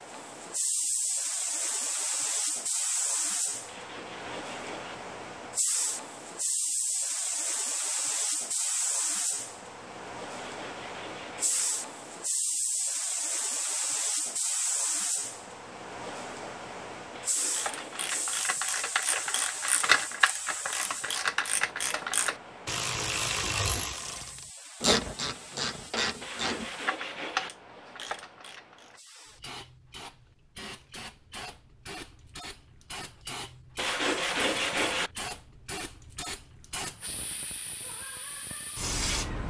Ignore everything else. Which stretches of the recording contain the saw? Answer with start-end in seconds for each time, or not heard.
3.6-5.0, 10.4-11.7, 17.1-18.4, 26.2-27.5, 33.8-35.1.